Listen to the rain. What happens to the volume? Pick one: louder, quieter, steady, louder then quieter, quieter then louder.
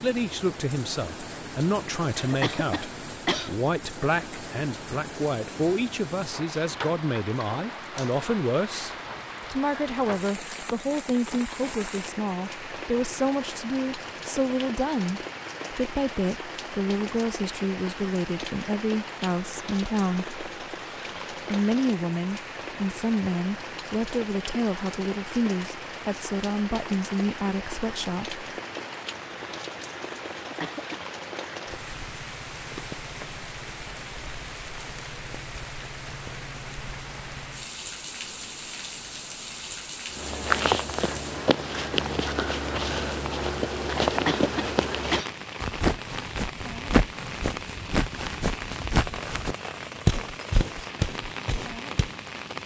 steady.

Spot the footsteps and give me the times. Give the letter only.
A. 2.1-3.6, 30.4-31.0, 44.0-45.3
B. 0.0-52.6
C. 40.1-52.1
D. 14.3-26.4
C.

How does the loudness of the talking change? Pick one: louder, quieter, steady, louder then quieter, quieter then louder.
steady.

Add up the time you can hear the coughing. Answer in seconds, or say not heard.
3 s.